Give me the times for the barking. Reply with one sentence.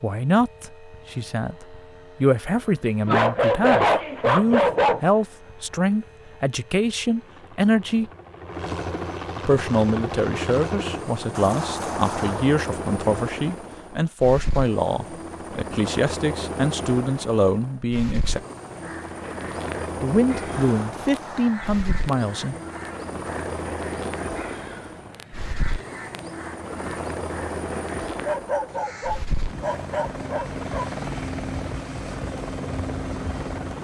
You can hear the barking from 3.0 to 5.0 s and from 28.2 to 30.9 s.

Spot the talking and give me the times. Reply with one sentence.
You can hear the talking from 0.0 to 8.1 s, from 9.4 to 18.4 s and from 20.0 to 22.6 s.